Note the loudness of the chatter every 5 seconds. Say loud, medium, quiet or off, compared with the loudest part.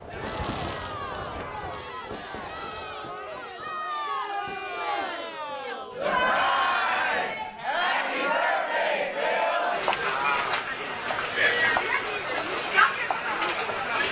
medium, loud, loud.